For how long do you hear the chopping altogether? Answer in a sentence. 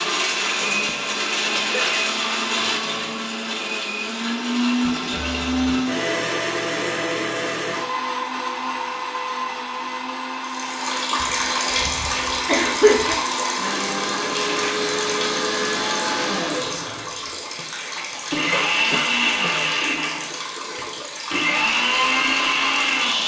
You can't hear the chopping here.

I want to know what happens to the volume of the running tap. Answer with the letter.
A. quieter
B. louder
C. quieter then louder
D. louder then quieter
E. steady
A.